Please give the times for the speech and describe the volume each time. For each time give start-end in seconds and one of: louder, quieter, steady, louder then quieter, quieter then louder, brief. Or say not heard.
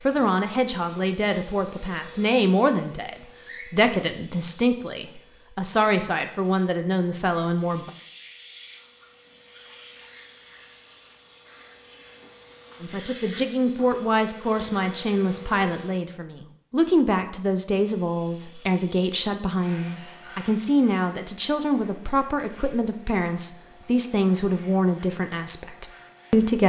0.0-7.9 steady
12.8-26.6 steady.